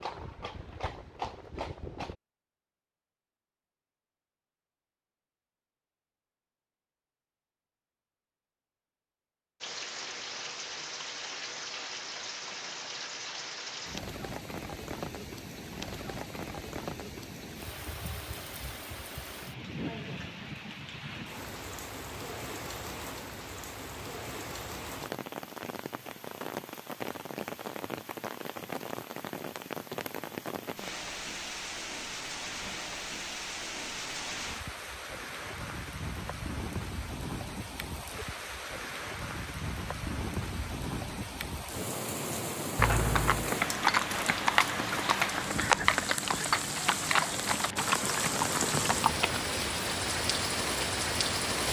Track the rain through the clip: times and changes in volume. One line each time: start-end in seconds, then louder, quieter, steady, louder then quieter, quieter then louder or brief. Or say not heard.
9.6-51.6 louder.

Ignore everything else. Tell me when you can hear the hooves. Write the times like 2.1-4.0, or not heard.
0.0-2.1, 42.8-49.4.